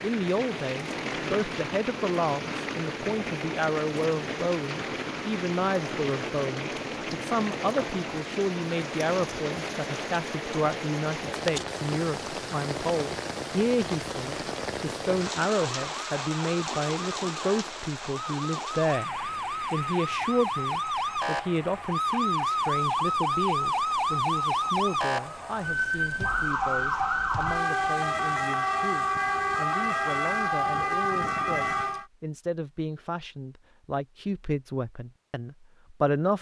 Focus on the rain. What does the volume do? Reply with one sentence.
The volume of the rain goes down.